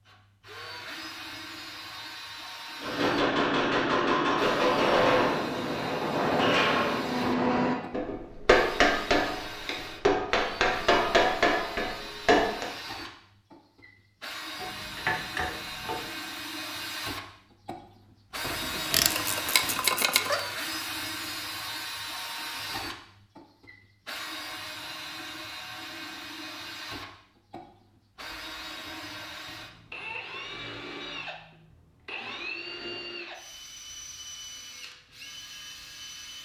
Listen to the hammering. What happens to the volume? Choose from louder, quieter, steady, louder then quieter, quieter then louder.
steady.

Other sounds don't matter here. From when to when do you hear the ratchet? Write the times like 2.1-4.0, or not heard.
14.6-16.1, 18.4-20.4.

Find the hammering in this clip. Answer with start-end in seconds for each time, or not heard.
2.8-12.7.